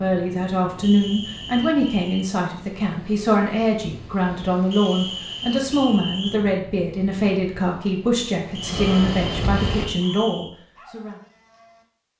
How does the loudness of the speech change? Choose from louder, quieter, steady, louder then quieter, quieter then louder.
steady.